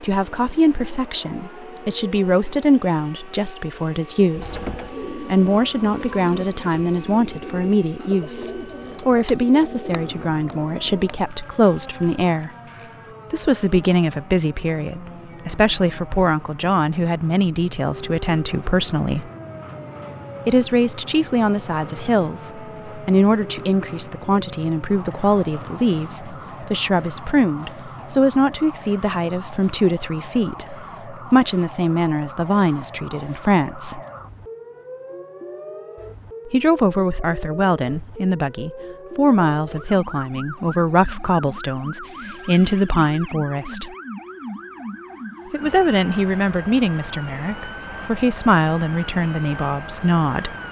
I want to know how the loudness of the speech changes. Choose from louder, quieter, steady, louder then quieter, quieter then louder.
steady.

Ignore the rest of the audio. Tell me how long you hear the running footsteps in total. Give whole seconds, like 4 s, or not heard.
not heard.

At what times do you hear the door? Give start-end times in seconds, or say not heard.
4.3-5.0.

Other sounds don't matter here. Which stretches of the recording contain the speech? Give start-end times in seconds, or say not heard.
0.0-12.5, 13.3-19.3, 20.4-34.0, 36.5-43.9, 45.5-50.5.